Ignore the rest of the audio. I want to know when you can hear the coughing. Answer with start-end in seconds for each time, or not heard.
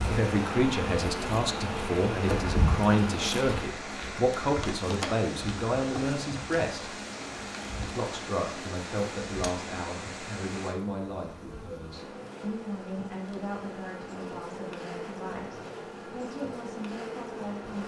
not heard.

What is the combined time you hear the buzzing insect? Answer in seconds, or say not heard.
18 s.